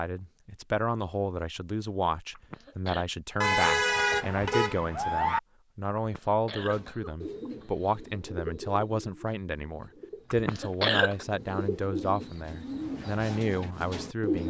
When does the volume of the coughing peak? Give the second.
11 s.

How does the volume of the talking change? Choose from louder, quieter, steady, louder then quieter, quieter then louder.
steady.